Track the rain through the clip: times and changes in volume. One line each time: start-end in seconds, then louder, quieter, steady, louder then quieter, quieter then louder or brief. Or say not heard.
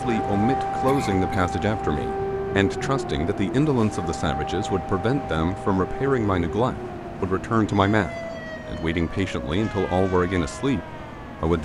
not heard.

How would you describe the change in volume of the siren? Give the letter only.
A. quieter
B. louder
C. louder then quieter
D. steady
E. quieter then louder
A.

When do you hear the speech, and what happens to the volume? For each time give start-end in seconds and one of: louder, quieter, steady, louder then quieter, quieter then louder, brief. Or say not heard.
0.0-11.6 steady.